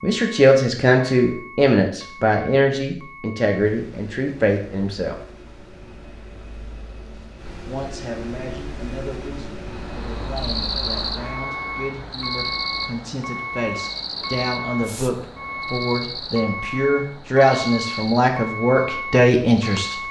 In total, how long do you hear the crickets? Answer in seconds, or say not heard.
10 s.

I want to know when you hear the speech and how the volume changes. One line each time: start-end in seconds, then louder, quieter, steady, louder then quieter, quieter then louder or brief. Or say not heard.
0.0-5.2 quieter
7.6-19.9 louder.